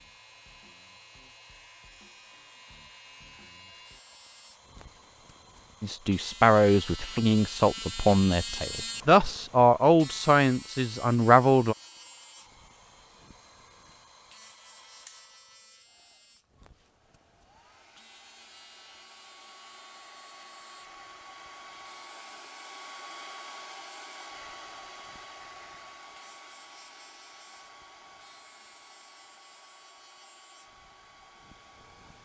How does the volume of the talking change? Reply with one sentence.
The volume of the talking stays about the same.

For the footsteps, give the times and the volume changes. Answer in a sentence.
The footsteps can't be heard in this clip.